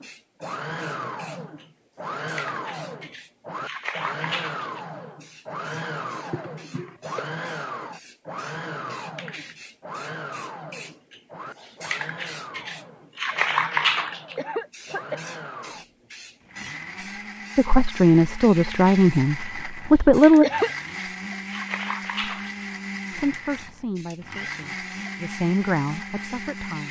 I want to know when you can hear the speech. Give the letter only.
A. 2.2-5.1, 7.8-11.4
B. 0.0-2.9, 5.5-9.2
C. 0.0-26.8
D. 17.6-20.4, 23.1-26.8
D.